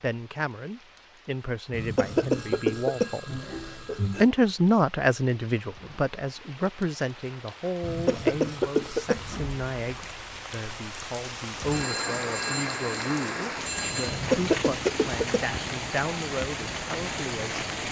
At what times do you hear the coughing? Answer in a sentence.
You can hear the coughing from 1.7 to 4.2 s, from 7.8 to 9.4 s and from 14.1 to 15.4 s.